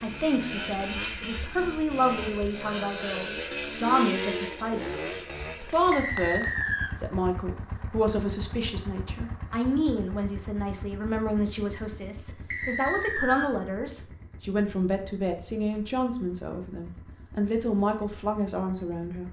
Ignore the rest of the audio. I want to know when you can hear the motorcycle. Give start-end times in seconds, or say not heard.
0.0-19.2.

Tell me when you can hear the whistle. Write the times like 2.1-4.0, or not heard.
5.9-7.0, 12.5-13.5.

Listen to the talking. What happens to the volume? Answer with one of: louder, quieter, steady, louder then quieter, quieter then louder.
steady.